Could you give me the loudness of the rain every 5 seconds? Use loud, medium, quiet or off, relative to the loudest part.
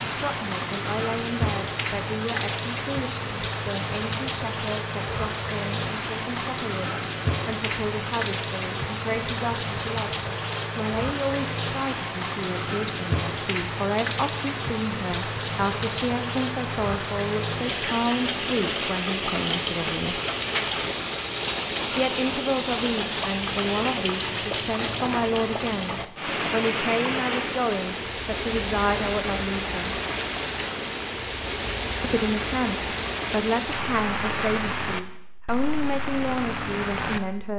loud, loud, loud, loud, loud, loud, loud, medium.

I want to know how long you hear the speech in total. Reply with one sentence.
The speech can be heard for 34 seconds in total.